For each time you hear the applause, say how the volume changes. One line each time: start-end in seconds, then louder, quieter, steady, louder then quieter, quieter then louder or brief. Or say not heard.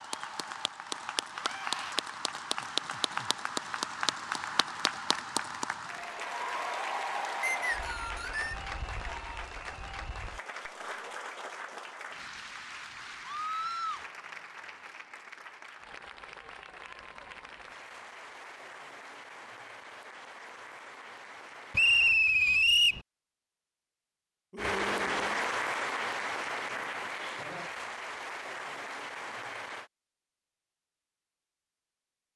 0.0-22.2 quieter
24.6-29.9 quieter.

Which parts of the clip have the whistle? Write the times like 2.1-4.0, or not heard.
7.4-8.6, 21.7-23.0.